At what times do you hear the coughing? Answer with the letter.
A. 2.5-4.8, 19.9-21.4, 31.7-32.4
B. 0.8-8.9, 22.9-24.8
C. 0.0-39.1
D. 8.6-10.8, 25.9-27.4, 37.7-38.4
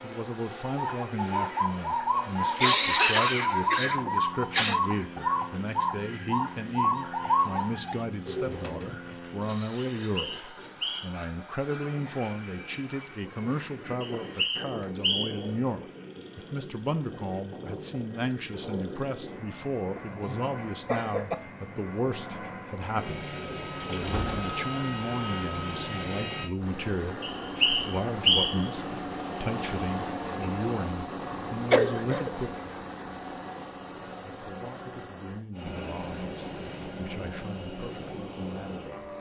A.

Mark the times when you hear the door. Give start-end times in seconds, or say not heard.
not heard.